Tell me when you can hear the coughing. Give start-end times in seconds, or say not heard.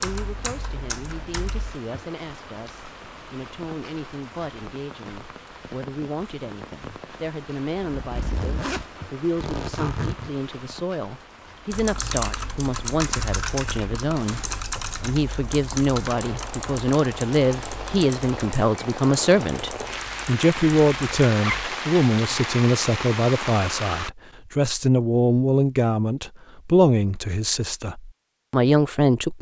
not heard.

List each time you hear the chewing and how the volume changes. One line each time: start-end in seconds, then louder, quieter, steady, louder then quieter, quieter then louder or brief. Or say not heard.
not heard.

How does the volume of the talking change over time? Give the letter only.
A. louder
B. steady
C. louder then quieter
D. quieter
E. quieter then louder
A.